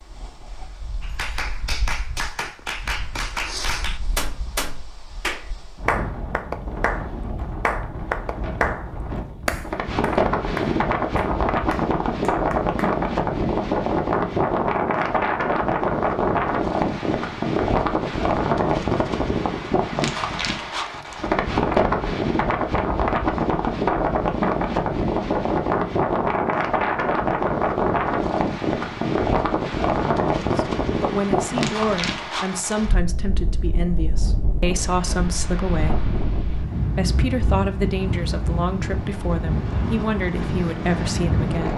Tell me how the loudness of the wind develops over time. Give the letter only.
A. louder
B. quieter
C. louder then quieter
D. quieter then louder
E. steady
C.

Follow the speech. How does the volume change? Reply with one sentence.
The volume of the speech stays about the same.